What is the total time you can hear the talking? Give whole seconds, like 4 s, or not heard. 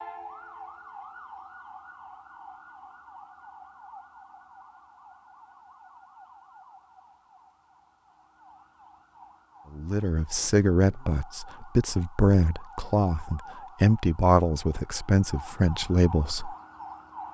7 s.